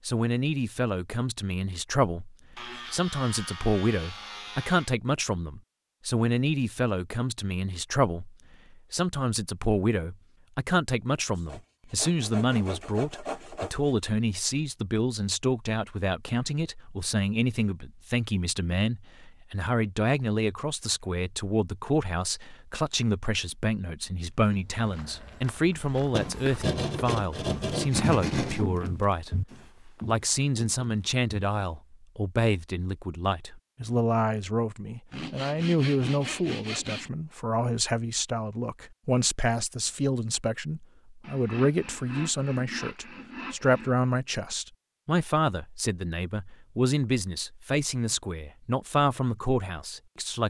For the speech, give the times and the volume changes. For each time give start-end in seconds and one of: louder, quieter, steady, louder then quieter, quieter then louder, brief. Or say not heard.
0.1-50.4 steady.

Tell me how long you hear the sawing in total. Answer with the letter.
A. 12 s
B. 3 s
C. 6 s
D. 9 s
A.